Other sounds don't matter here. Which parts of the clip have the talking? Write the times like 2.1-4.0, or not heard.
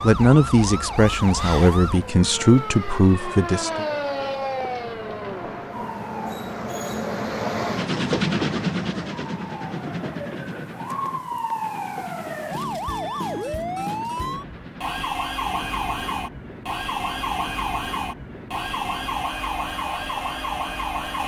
0.0-3.9.